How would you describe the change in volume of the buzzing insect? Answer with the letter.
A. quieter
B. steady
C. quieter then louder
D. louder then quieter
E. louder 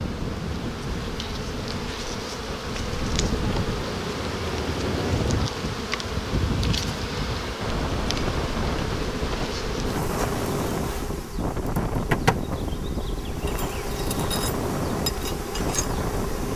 B.